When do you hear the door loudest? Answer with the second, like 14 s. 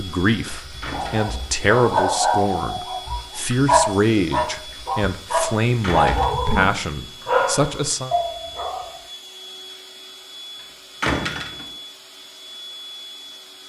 11 s.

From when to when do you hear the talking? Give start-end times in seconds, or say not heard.
0.0-8.1.